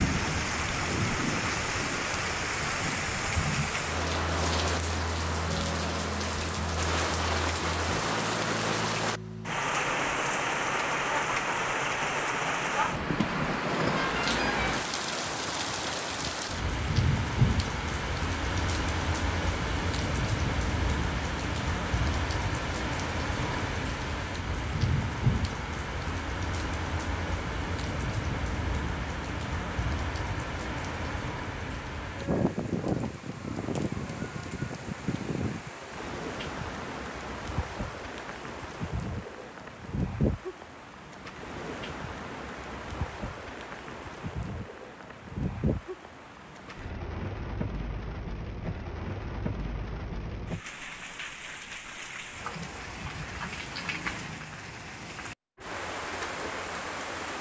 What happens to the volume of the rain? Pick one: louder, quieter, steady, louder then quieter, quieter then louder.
quieter.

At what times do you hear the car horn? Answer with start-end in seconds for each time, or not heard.
13.9-14.7.